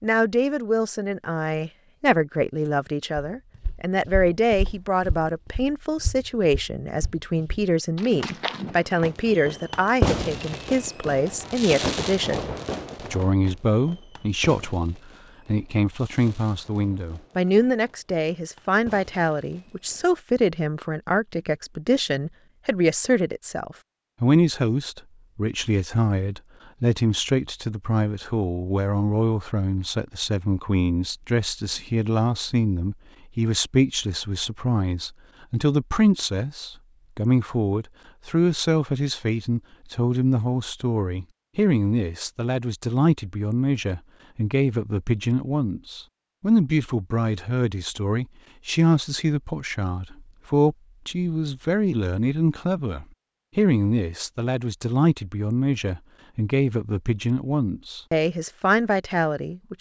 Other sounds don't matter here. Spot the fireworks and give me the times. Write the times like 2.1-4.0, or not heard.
8.7-20.2.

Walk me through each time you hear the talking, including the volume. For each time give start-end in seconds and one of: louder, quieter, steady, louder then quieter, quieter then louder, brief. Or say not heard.
0.0-12.5 steady
13.1-59.7 steady.